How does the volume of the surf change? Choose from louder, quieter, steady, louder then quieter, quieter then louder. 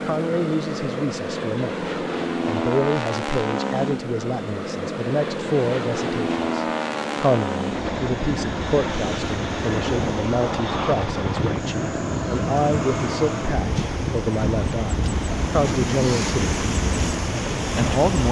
louder.